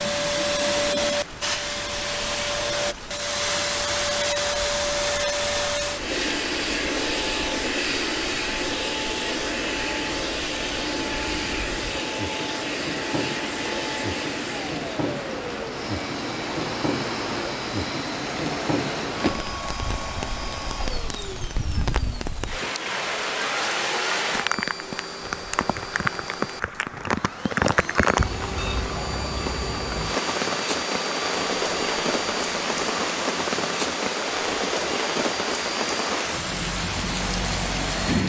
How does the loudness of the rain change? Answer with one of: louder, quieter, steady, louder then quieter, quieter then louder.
louder.